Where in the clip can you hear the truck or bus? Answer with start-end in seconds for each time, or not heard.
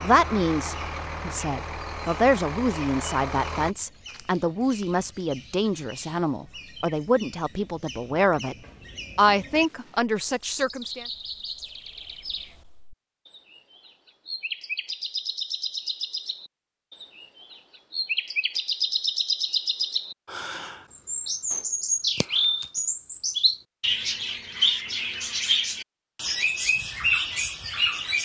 0.0-3.8.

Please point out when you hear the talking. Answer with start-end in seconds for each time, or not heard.
0.0-8.6, 9.2-11.1.